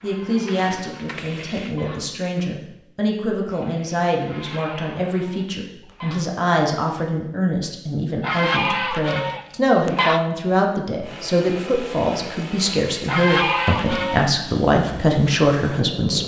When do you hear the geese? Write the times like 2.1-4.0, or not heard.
0.0-2.0, 4.2-6.2, 8.2-10.2, 13.1-14.3.